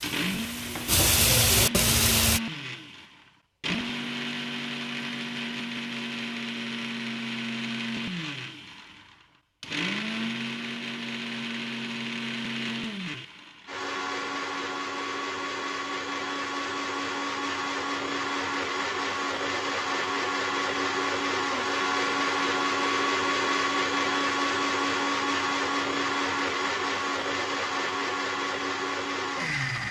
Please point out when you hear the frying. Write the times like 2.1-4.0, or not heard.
0.0-2.4.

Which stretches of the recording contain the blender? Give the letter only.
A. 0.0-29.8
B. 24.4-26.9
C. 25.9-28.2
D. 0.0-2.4
A.